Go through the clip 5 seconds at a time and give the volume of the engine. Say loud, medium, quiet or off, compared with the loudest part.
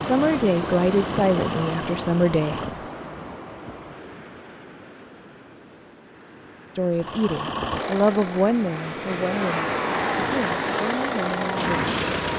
medium, loud, loud.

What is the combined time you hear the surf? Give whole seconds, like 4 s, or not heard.
12 s.